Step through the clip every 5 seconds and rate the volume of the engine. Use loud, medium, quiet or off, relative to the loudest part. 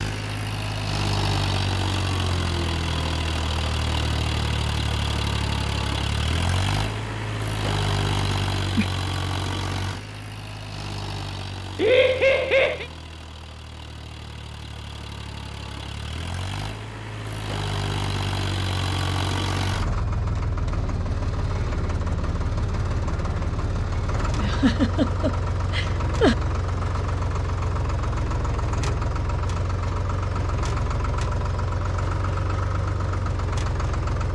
loud, loud, medium, loud, loud, loud, loud.